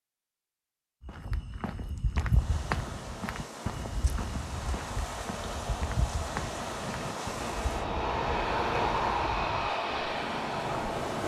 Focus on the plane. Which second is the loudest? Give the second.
9 s.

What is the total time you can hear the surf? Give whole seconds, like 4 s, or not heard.
9 s.